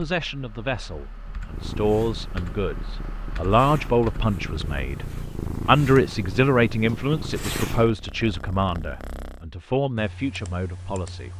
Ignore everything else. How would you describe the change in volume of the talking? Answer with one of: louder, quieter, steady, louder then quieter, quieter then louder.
louder then quieter.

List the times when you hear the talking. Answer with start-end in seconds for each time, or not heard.
0.0-11.3.